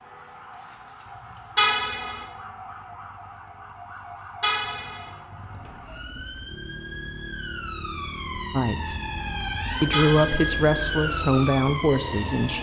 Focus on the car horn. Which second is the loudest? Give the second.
2 s.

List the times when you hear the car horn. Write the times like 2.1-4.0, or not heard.
1.6-2.2, 4.4-5.1, 9.9-10.6.